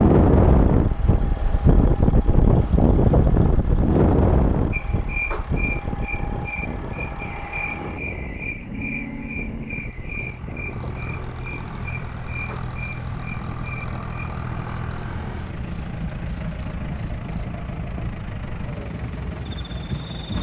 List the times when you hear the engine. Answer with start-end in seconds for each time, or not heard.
0.0-20.3.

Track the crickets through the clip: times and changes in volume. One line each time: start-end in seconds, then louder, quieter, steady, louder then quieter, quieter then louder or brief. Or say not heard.
4.7-20.3 quieter.